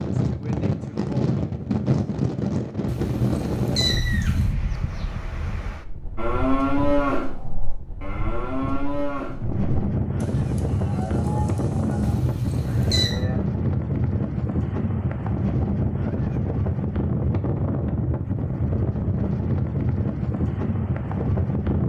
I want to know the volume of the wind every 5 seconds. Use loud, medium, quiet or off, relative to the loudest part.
loud, medium, loud, loud, loud.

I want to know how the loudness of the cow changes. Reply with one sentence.
The loudness of the cow goes down.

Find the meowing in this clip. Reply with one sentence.
The meowing can be heard from 2.9 to 4.5 s and from 12.0 to 13.2 s.